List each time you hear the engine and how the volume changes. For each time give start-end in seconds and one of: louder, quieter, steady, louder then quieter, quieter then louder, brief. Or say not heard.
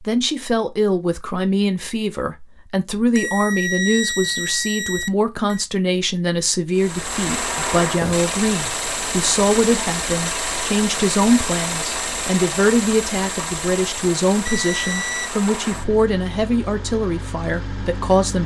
6.7-18.4 quieter.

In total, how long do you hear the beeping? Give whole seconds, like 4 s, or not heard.
3 s.